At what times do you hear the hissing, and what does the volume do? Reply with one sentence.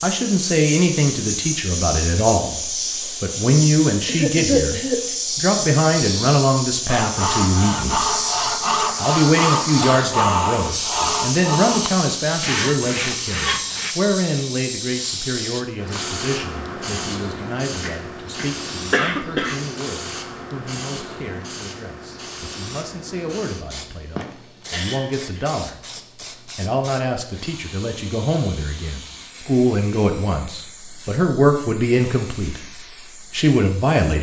You can hear the hissing from 0.0 to 34.1 s, getting quieter.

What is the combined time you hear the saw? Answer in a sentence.
The saw can be heard for 7 seconds in total.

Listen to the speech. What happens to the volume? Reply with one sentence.
The loudness of the speech goes down, then up.